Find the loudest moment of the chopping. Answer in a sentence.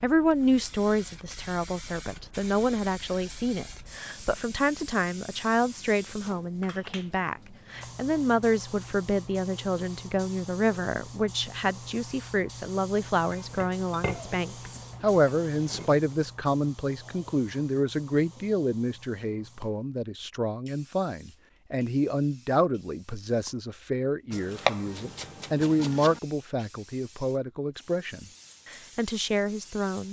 The volume of the chopping peaks at 25 seconds.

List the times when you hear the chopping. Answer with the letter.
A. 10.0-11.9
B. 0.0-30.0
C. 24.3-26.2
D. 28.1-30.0
C.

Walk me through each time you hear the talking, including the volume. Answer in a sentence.
The talking can be heard from 0.0 to 30.0 s, at a steady volume.